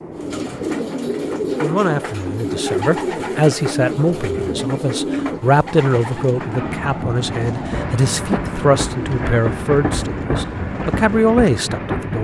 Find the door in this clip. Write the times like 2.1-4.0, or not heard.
not heard.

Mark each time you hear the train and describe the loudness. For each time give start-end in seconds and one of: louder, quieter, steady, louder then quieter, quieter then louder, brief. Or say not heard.
0.0-12.1 louder.